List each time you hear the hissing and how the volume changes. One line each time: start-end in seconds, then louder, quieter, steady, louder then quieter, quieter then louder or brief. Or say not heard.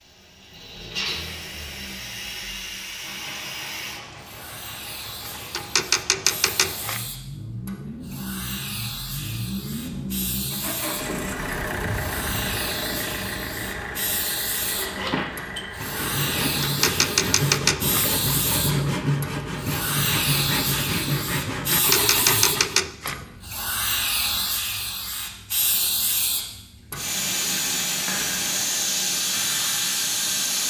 0.0-30.6 louder.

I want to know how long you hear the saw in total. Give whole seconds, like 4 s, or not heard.
8 s.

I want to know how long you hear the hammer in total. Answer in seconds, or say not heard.
not heard.